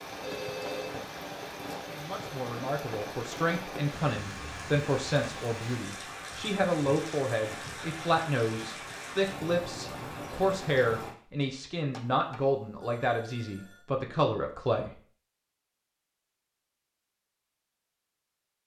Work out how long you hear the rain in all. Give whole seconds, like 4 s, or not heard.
11 s.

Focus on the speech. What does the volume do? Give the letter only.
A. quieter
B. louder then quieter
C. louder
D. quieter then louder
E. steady
E.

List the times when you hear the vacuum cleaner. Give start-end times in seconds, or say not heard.
not heard.